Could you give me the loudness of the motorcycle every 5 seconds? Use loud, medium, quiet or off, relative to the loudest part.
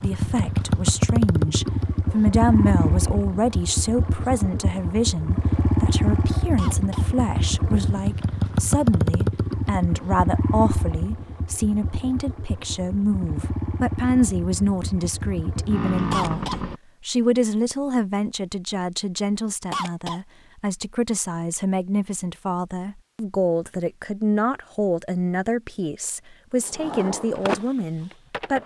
loud, loud, medium, loud, off, off.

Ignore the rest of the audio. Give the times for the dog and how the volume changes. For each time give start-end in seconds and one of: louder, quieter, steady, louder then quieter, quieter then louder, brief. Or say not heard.
not heard.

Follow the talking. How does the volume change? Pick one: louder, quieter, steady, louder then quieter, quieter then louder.
steady.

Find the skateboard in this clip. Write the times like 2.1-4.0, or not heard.
26.8-28.6.